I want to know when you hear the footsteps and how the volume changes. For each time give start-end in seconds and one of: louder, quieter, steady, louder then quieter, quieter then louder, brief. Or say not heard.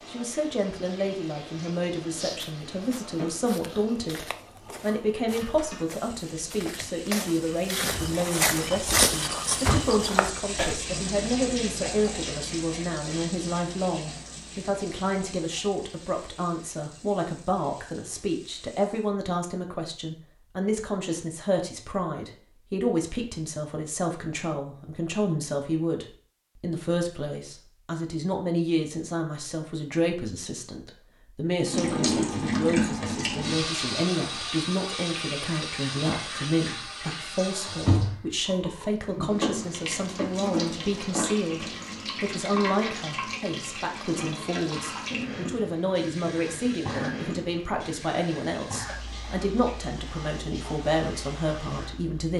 2.0-10.8 louder.